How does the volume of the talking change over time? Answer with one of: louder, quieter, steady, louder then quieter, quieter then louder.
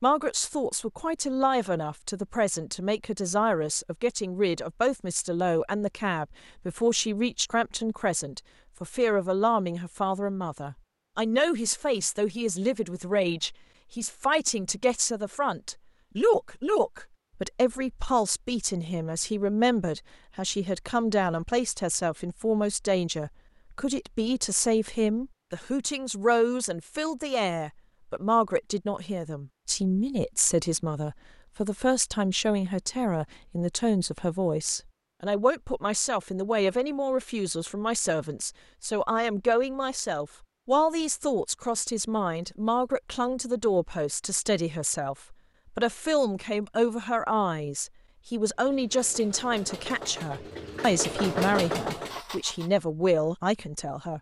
steady.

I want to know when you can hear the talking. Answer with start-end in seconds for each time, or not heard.
0.0-54.1.